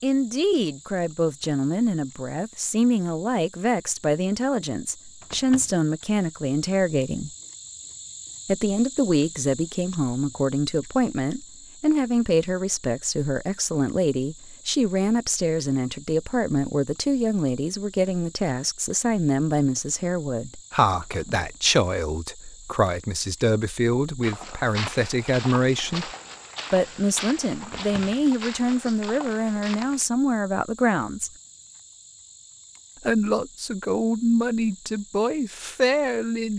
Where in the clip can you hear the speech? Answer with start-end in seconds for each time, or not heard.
0.0-7.3, 8.4-26.1, 26.7-31.3, 33.0-36.5.